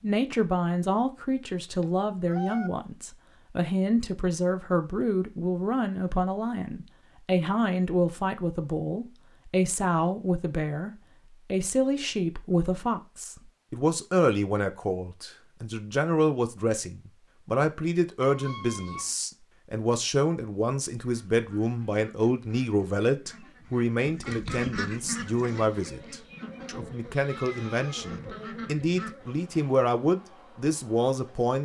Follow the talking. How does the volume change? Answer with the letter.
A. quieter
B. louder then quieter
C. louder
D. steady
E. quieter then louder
D.